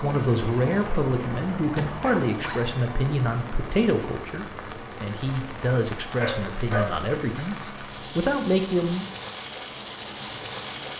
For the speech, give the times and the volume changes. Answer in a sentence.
The speech can be heard from 0.0 to 9.1 s, at a steady volume.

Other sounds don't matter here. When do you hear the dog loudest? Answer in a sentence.
The loudest moment of the dog is at 7 seconds.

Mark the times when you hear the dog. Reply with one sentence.
You can hear the dog from 1.7 to 2.7 s and from 6.0 to 7.1 s.